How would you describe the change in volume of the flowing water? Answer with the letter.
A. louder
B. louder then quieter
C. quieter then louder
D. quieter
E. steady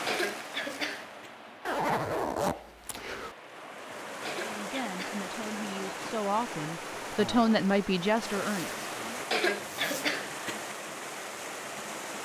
A.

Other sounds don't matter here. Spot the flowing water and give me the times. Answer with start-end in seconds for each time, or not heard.
0.0-12.2.